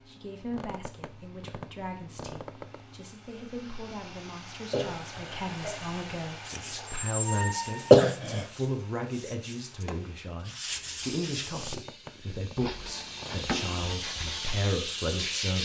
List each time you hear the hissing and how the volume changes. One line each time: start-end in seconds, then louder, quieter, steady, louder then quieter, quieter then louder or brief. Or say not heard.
10.7-15.5 quieter then louder.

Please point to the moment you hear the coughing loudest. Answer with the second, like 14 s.
8 s.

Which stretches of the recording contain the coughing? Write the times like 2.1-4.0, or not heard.
4.7-5.7, 7.9-8.4.